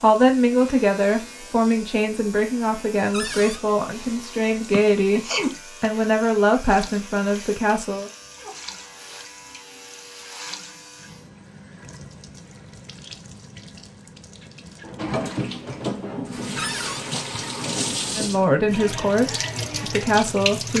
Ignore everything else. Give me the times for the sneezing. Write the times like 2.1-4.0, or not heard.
4.7-5.5.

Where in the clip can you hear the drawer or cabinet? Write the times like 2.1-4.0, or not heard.
3.1-3.6, 16.6-17.1.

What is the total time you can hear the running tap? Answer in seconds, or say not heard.
21 s.